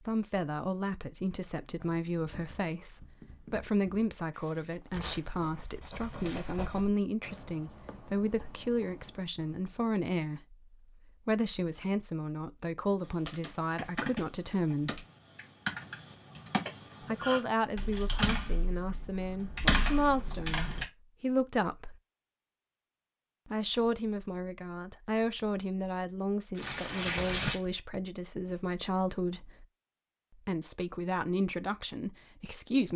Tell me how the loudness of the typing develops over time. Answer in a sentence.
The loudness of the typing goes up.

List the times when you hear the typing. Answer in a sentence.
You can hear the typing from 13.0 to 20.9 s.